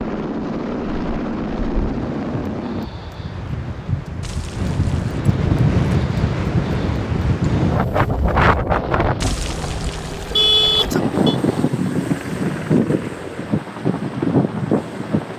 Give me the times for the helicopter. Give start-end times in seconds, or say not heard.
0.0-2.9, 8.7-15.3.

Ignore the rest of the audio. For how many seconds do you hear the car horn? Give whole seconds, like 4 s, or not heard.
3 s.